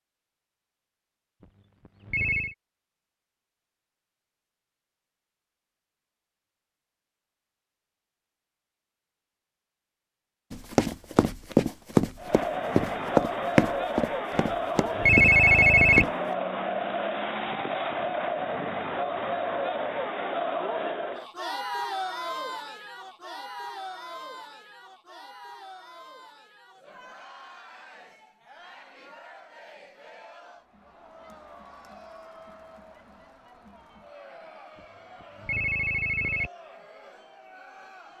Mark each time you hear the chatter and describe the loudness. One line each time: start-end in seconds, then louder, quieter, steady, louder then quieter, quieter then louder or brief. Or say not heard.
12.2-38.1 quieter.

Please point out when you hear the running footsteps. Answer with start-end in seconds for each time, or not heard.
10.8-16.1.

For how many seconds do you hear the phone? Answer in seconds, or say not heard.
3 s.